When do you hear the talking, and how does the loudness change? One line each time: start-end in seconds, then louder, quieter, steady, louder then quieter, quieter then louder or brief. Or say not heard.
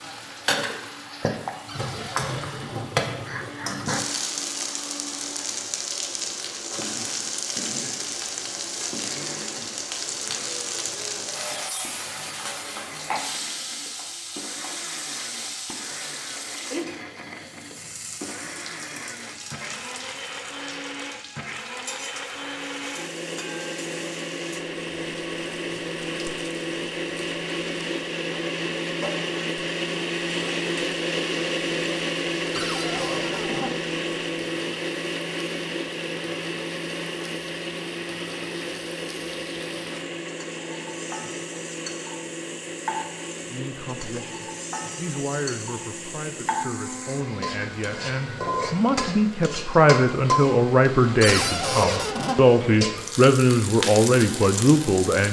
43.5-55.2 louder.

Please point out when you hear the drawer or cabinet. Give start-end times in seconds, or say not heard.
1.6-2.9, 32.5-33.7, 51.2-52.4.